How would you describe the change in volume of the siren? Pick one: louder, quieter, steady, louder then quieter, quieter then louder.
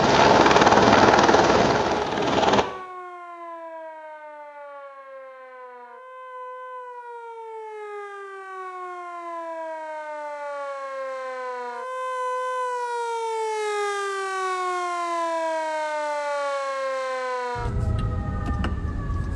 louder.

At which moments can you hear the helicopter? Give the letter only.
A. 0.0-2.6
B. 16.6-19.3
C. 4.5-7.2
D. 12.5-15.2
A.